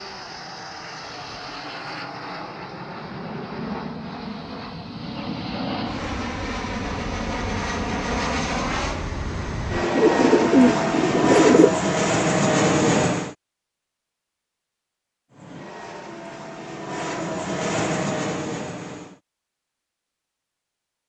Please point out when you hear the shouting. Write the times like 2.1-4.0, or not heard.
not heard.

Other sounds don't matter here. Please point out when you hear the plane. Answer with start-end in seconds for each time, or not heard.
0.0-13.3, 15.3-19.2.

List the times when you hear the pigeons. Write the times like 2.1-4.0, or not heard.
9.9-11.7.